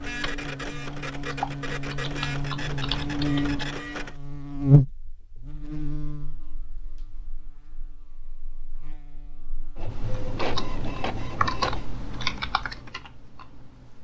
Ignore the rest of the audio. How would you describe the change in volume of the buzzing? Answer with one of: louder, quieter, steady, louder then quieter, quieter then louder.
louder then quieter.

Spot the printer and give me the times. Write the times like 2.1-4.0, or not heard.
0.0-4.2, 9.8-11.8.